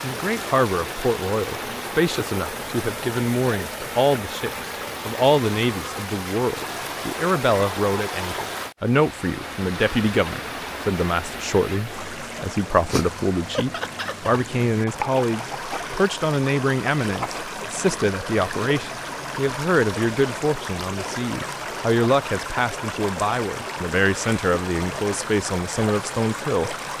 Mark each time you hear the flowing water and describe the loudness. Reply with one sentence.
You can hear the flowing water from 0.0 to 26.9 s, at a steady volume.